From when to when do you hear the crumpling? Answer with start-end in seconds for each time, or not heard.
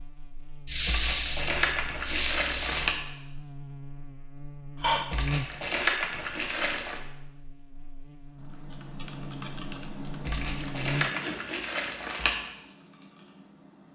0.8-3.0, 5.1-7.0, 10.2-12.3.